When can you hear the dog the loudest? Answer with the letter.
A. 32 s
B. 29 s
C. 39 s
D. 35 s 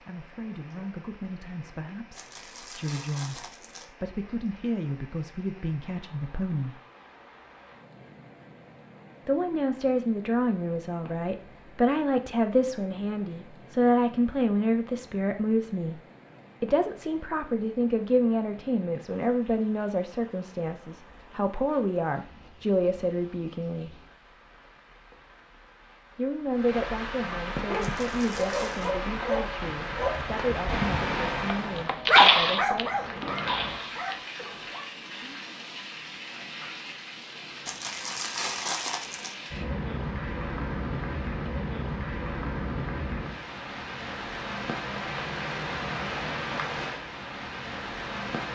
A.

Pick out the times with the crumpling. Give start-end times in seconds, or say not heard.
2.1-3.9, 27.8-28.9, 37.6-39.4.